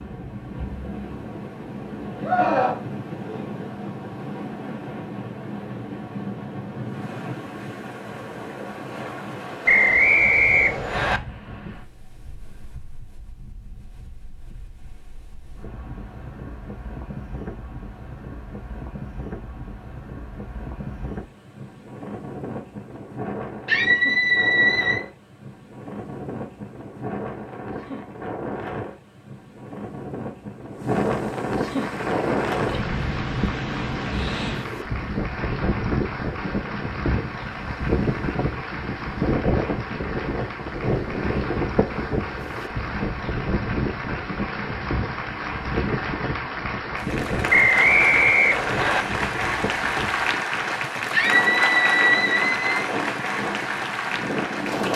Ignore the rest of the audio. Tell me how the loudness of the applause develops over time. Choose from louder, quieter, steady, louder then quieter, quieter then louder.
louder.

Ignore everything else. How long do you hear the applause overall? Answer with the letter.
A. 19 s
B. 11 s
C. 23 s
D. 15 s
C.